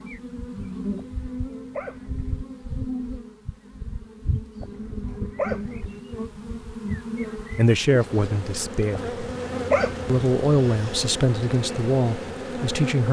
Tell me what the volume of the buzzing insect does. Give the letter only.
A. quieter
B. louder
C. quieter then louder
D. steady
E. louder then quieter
D.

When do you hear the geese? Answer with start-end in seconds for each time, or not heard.
not heard.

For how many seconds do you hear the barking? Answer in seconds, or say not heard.
4 s.